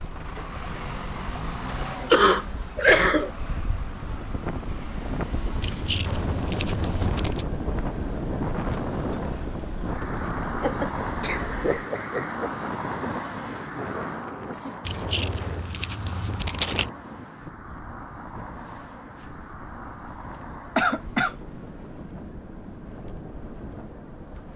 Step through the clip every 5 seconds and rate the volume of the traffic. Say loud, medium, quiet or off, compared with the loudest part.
loud, loud, loud, medium, medium.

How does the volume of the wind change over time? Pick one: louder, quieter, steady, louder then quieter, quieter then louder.
quieter.